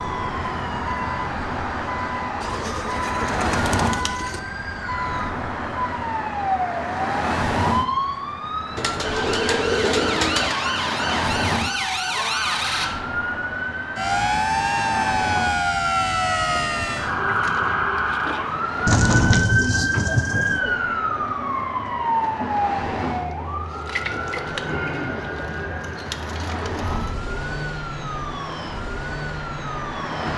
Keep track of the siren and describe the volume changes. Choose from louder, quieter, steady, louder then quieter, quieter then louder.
louder then quieter.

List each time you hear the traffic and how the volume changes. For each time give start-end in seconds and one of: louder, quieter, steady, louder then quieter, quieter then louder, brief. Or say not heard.
0.0-30.3 quieter.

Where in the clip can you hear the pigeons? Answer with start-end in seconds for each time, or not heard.
2.4-4.4, 8.8-10.6, 18.9-20.6, 24.9-27.2.